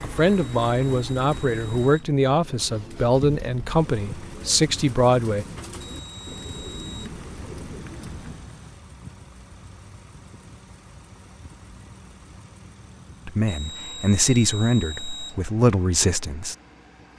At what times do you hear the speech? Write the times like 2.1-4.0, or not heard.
0.0-5.5, 13.2-16.6.